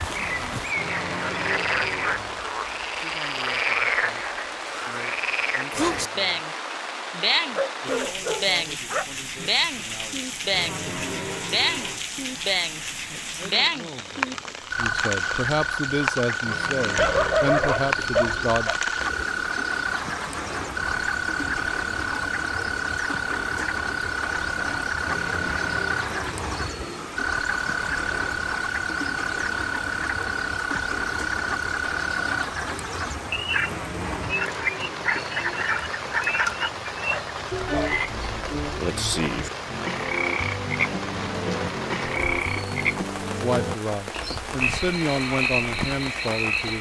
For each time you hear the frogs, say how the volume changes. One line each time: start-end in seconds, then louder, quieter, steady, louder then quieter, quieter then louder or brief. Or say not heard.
0.0-46.7 steady.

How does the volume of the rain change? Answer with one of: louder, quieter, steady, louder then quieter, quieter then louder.
steady.